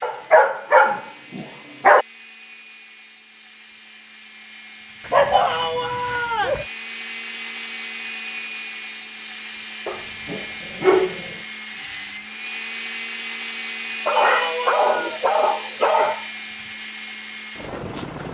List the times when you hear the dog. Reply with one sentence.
You can hear the dog from 0.0 to 2.0 s, from 5.0 to 6.7 s, from 9.8 to 11.2 s and from 14.1 to 16.2 s.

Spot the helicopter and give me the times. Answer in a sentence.
The helicopter can be heard from 0.0 to 18.2 s.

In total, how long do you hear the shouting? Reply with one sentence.
The shouting can be heard for 2 seconds in total.